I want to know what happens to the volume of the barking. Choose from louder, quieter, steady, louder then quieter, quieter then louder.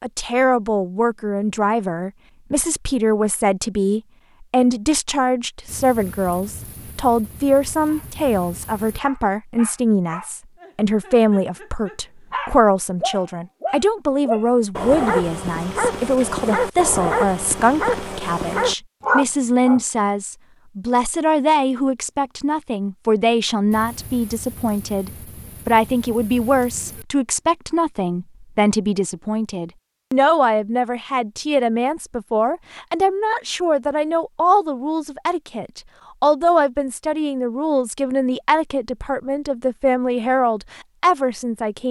louder.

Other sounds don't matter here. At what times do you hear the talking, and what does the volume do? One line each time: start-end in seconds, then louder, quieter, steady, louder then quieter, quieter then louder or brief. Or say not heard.
0.0-41.8 steady.